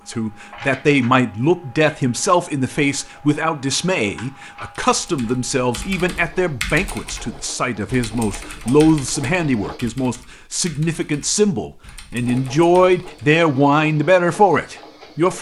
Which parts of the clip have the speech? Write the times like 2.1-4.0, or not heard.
0.1-15.3.